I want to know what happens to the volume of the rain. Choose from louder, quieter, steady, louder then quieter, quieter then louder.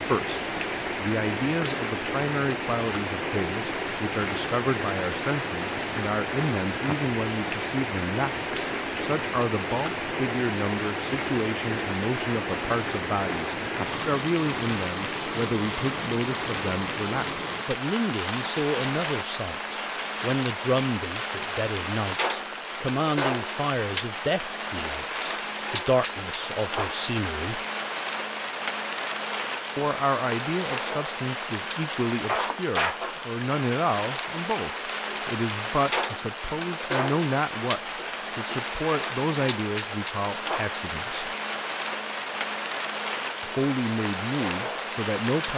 steady.